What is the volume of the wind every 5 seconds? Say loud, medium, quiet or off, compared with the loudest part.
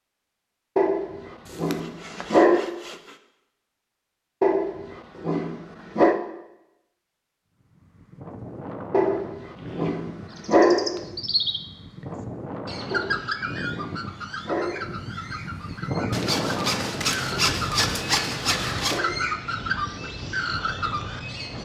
off, medium, medium, loud, medium.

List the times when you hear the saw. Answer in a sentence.
The saw can be heard from 1.4 to 3.1 s and from 16.1 to 19.0 s.